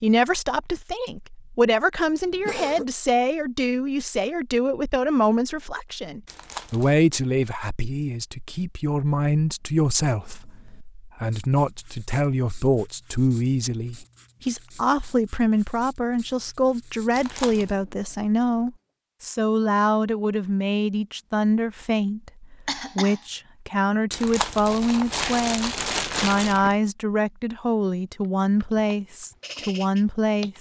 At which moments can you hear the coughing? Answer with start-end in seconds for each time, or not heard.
2.0-2.9, 22.6-23.2.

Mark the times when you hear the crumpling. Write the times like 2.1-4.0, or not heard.
6.2-7.0, 17.1-17.8, 24.1-26.8.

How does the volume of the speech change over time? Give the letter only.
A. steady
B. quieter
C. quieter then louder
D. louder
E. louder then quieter
A.